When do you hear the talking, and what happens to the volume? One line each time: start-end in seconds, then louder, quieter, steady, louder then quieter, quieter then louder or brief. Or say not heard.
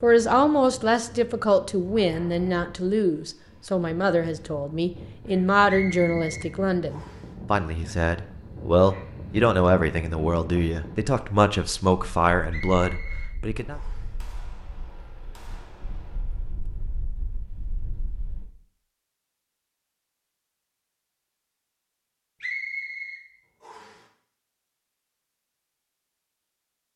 0.0-13.8 steady.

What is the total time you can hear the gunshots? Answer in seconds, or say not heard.
3 s.